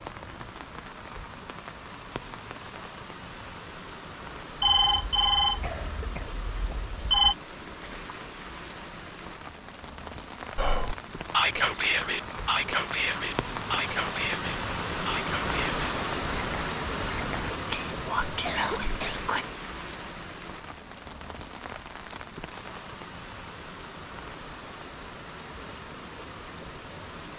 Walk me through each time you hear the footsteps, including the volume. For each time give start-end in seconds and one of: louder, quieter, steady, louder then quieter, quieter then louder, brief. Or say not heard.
not heard.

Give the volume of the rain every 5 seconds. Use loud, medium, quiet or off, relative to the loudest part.
medium, medium, loud, loud, medium, medium.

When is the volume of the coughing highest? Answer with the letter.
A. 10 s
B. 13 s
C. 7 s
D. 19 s
D.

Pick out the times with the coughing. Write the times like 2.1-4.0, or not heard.
5.6-6.8, 18.4-19.2.